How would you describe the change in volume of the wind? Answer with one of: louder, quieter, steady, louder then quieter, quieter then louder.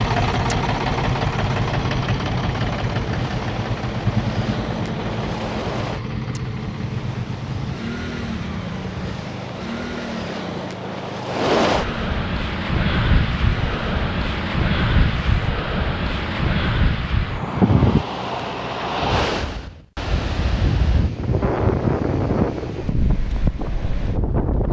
louder.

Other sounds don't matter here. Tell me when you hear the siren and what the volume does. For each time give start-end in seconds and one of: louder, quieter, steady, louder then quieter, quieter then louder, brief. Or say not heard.
not heard.